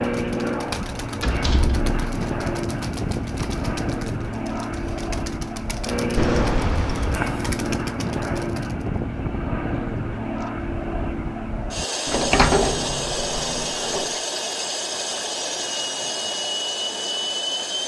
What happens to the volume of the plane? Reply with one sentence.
The volume of the plane stays about the same.